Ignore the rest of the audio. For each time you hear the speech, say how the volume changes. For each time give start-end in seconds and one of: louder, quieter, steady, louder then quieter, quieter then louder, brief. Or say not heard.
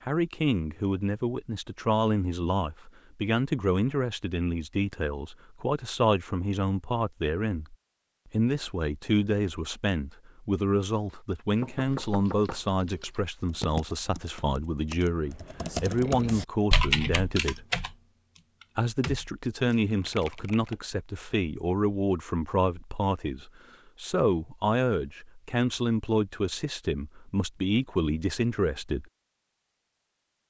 0.0-17.6 steady
18.8-29.1 steady.